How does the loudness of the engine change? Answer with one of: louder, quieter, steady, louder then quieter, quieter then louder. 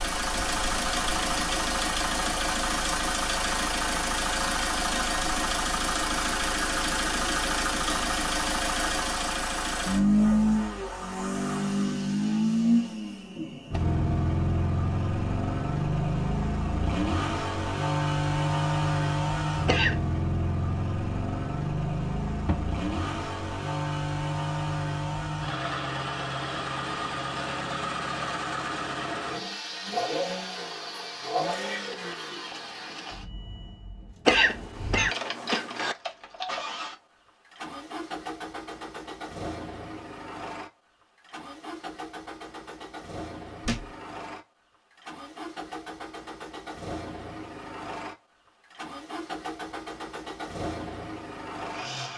quieter.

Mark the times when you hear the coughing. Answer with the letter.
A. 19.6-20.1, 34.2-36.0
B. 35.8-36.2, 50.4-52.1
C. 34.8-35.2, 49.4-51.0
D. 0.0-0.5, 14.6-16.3
A.